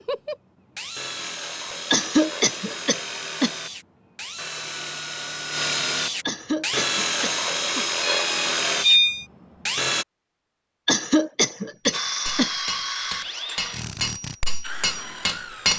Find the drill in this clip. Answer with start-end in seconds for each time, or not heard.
0.0-10.1, 11.9-15.7.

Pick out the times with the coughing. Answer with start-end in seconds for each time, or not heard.
1.9-3.5, 6.2-7.8, 10.8-12.5.